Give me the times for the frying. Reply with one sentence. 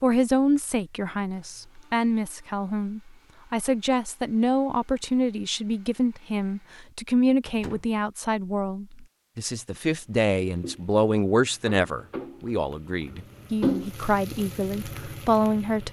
You can hear the frying from 10.0 to 15.8 s.